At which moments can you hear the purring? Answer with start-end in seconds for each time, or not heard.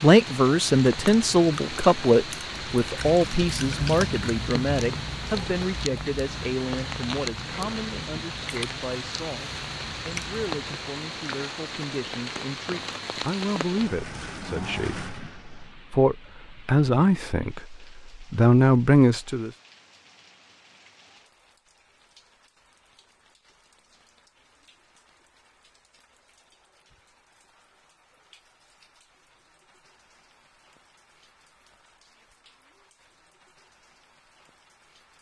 not heard.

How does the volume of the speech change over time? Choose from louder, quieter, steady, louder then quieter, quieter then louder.
quieter then louder.